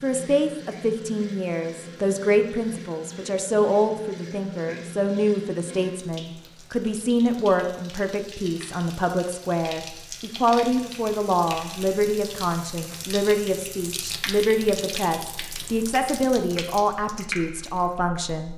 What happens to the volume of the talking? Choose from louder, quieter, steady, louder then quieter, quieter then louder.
steady.